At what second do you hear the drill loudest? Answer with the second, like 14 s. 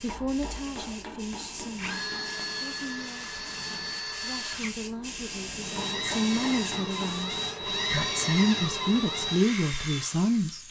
8 s.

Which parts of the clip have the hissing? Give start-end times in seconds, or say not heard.
0.0-7.5.